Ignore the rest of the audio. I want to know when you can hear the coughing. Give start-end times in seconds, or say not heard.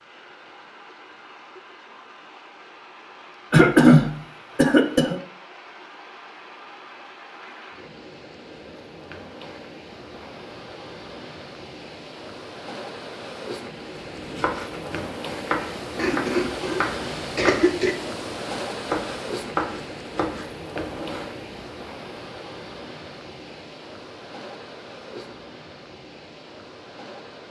3.5-5.2, 15.9-17.9.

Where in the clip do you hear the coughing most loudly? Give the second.
4 s.